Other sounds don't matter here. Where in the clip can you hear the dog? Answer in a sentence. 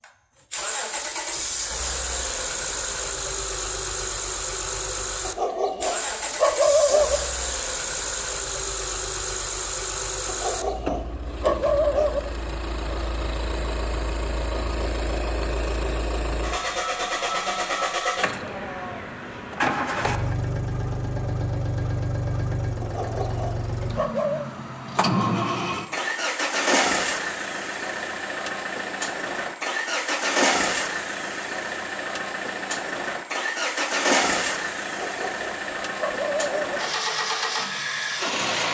You can hear the dog from 5.2 to 7.2 s, from 10.2 to 12.2 s, from 22.8 to 24.4 s and from 34.9 to 36.8 s.